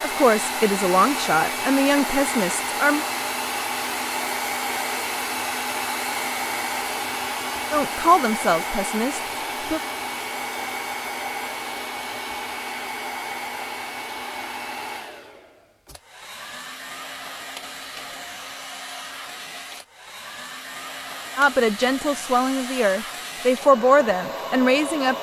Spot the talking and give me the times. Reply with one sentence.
You can hear the talking from 0.0 to 3.0 s, from 7.7 to 9.8 s and from 21.4 to 25.1 s.